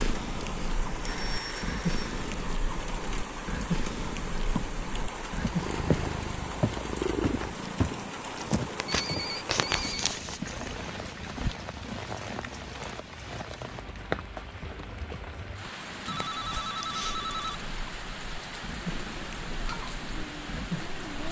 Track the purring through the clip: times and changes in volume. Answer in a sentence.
The purring can be heard from 0.0 to 21.2 s, getting quieter then louder.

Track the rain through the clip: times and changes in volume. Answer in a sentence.
You can hear the rain from 0.0 to 21.2 s, at a steady volume.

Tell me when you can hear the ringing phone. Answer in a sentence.
You can hear the ringing phone from 1.0 to 2.2 s, from 8.8 to 10.1 s and from 16.1 to 17.6 s.